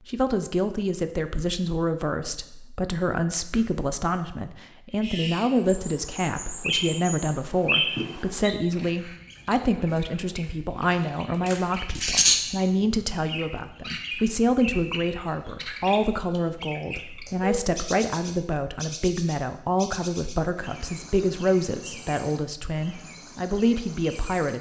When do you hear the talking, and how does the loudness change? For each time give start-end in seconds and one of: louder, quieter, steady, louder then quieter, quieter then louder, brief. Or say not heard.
0.1-24.5 steady.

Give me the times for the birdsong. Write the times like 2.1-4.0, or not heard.
5.0-24.5.